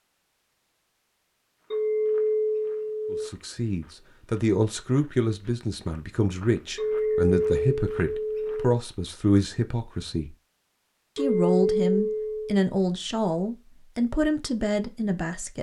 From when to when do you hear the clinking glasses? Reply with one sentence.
The clinking glasses can be heard from 1.7 to 3.3 s, from 6.8 to 8.6 s and from 11.2 to 12.6 s.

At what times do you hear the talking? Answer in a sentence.
The talking can be heard from 3.1 to 10.3 s and from 11.2 to 15.5 s.